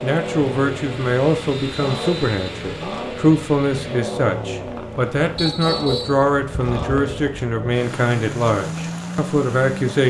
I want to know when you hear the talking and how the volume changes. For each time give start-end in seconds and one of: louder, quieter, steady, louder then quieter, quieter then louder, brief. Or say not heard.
0.0-10.0 steady.